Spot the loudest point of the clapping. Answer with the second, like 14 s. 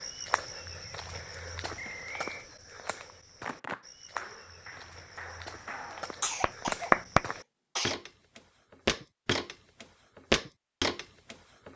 7 s.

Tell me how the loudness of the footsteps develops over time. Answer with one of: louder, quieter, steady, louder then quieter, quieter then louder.
louder.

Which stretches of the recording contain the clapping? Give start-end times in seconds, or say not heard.
3.4-7.2.